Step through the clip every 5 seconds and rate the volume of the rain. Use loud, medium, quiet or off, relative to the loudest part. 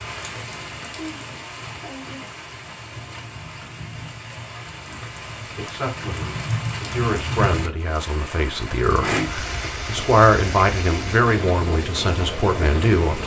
medium, loud, loud.